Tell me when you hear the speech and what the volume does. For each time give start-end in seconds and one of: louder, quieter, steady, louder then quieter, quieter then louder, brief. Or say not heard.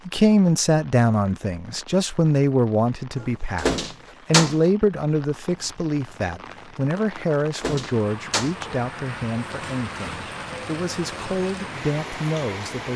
0.1-12.9 quieter.